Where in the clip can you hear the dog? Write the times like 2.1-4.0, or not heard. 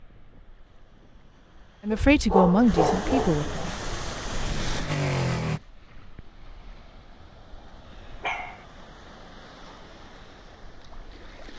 1.9-3.6, 8.2-8.7.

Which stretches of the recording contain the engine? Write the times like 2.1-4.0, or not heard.
3.6-5.6.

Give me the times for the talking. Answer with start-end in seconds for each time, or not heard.
1.8-3.8.